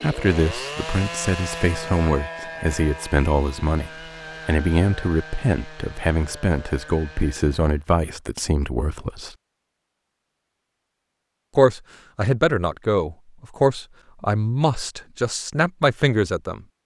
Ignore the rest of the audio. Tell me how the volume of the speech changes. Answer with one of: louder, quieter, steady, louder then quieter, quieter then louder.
steady.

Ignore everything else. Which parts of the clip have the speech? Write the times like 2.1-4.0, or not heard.
0.0-9.3, 11.6-16.6.